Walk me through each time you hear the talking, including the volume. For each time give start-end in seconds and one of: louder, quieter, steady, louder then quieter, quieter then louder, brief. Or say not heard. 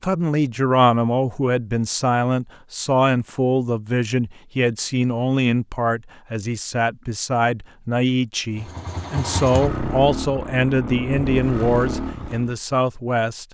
0.0-13.4 steady.